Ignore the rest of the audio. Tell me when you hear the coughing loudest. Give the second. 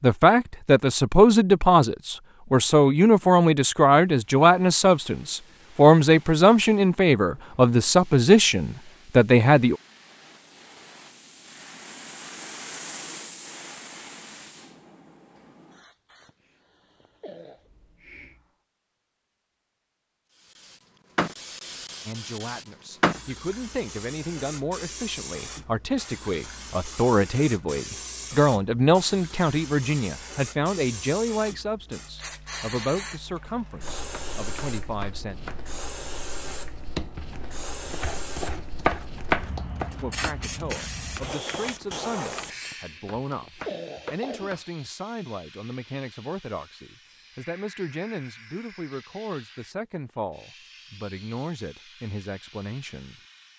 44 s.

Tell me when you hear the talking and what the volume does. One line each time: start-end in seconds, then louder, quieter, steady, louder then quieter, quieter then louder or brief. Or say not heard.
0.0-9.8 steady
22.1-35.5 louder then quieter
40.0-53.2 steady.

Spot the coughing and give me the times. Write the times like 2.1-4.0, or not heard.
16.2-17.7, 42.6-44.6.